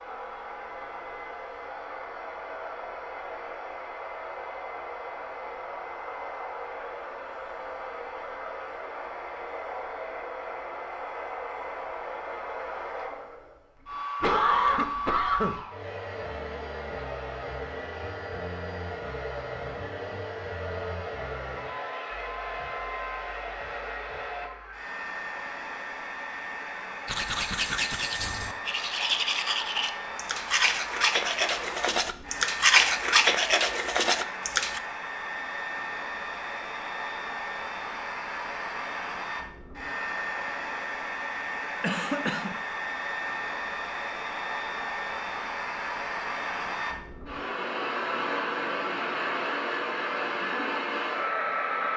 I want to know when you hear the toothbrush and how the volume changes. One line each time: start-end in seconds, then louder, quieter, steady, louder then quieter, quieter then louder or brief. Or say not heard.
27.1-34.8 louder.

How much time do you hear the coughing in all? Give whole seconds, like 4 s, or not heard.
2 s.